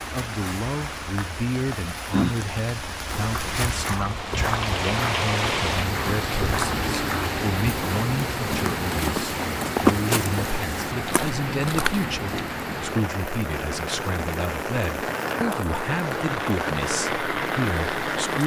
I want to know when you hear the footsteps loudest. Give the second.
10 s.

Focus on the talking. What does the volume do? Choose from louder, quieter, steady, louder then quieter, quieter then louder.
steady.